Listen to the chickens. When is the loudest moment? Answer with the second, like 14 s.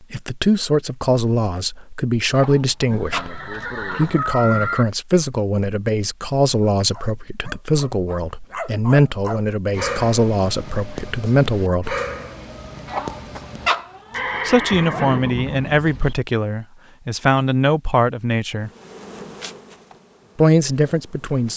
14 s.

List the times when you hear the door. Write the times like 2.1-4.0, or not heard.
not heard.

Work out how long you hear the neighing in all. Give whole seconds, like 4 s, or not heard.
4 s.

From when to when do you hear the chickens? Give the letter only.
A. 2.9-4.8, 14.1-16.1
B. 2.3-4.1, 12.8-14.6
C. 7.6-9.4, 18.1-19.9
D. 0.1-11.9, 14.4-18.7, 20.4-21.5
B.